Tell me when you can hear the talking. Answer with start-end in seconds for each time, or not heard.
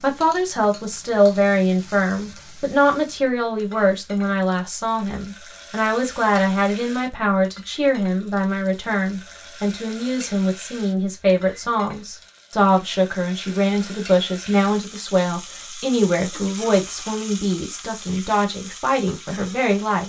0.0-20.0.